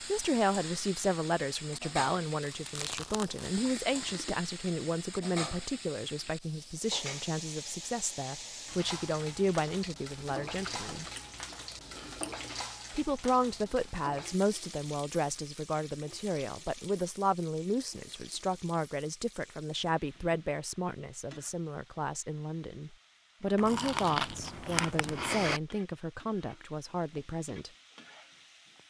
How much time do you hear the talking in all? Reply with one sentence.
You can hear the talking for 26 seconds altogether.